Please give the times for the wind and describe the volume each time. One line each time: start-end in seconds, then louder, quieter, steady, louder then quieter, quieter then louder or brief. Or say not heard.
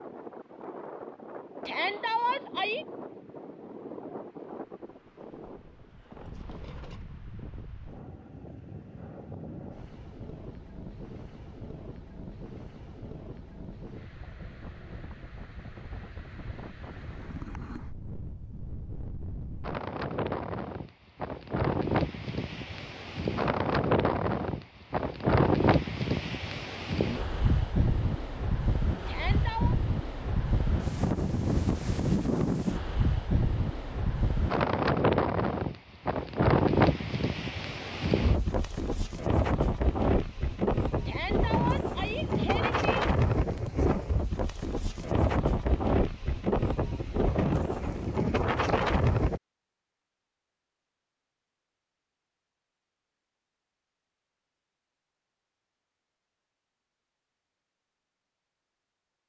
0.0-49.4 louder.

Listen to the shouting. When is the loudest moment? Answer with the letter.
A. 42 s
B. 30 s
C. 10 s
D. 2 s
D.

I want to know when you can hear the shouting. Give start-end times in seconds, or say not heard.
1.6-2.9, 29.1-29.8, 41.0-42.8.